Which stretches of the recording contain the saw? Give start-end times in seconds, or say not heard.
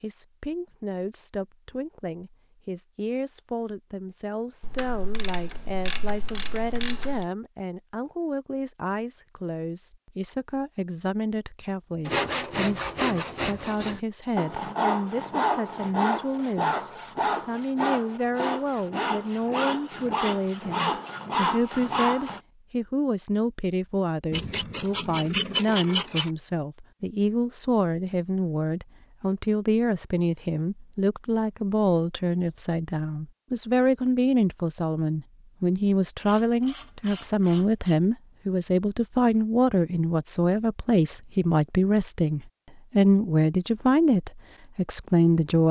12.1-22.4.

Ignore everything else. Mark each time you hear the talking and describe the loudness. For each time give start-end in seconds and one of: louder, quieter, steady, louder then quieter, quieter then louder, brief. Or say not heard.
0.0-45.6 louder.